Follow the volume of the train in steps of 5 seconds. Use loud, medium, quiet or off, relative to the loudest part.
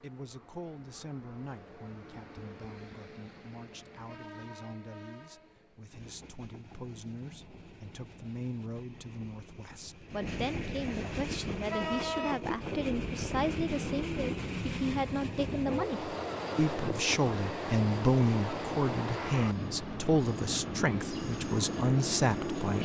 quiet, quiet, loud, loud, loud.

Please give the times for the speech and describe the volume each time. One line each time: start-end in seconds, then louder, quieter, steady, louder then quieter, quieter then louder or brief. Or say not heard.
0.0-22.8 louder.